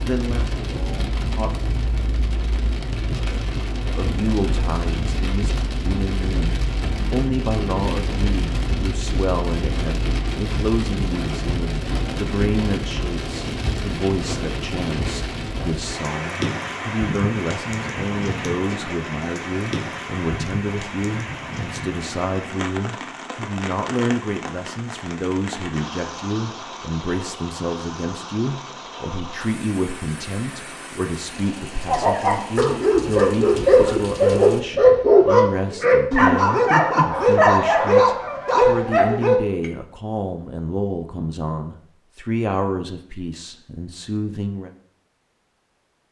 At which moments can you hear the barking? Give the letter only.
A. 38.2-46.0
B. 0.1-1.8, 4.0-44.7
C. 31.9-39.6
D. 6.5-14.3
C.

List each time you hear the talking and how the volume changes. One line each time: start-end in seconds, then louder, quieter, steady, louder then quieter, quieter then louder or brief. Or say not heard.
0.1-1.8 brief
4.0-44.7 steady.